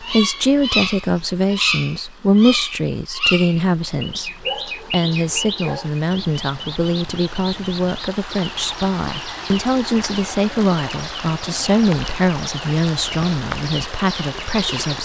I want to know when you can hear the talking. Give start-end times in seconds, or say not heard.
0.0-15.0.